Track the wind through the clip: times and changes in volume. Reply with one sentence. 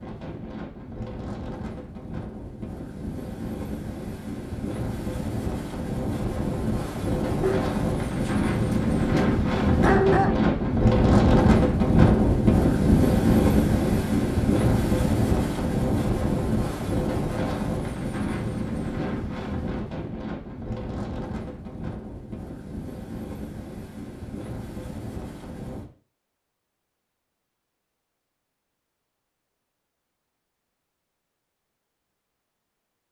The wind can be heard from 0.0 to 25.9 s, getting louder then quieter.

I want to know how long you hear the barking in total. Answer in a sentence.
You can hear the barking for 3 seconds altogether.